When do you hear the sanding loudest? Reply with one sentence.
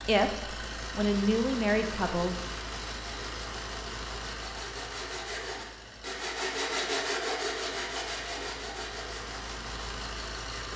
The loudest moment of the sanding is at 7 seconds.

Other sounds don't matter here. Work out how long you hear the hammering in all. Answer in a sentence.
You can't hear the hammering here.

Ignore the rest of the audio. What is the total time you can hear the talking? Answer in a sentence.
The talking can be heard for 2 seconds in total.